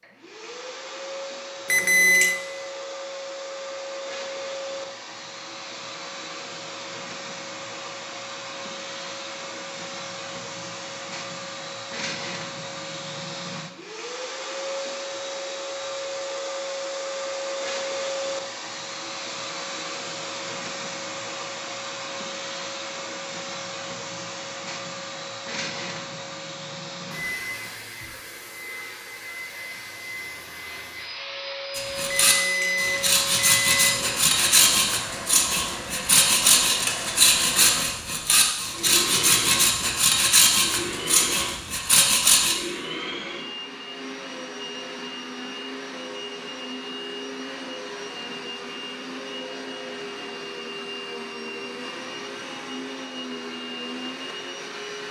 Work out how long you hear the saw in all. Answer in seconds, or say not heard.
11 s.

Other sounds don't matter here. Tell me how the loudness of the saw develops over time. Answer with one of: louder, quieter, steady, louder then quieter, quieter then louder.
steady.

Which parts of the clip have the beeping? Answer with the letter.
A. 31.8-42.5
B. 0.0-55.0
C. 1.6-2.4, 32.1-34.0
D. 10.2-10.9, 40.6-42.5
C.